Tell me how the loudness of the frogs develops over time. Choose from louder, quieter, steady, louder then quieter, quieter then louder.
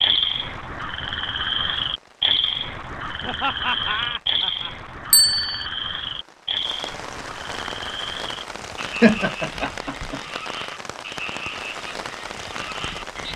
quieter.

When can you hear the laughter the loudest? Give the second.
9 s.